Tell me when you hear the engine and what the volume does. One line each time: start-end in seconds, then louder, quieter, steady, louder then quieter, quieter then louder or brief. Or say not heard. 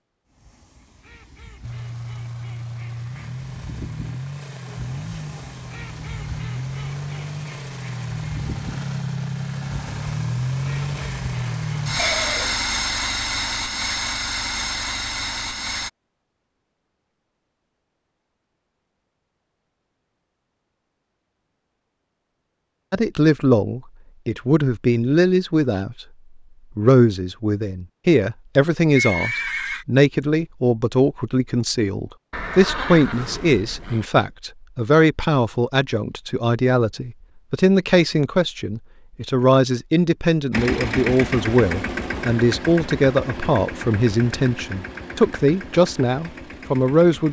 1.6-15.9 louder
40.5-47.2 quieter.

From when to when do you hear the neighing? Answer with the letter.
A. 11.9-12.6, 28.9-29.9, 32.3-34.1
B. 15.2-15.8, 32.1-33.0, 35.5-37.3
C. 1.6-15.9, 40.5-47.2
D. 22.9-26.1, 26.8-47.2
A.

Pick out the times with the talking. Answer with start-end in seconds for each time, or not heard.
22.9-26.1, 26.8-47.2.